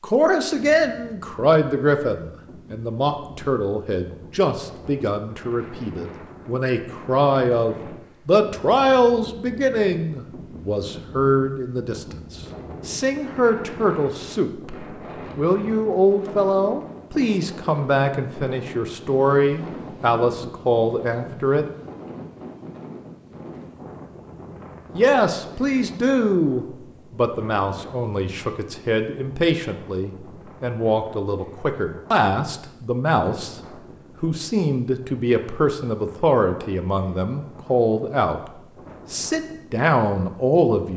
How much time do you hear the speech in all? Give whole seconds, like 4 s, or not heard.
36 s.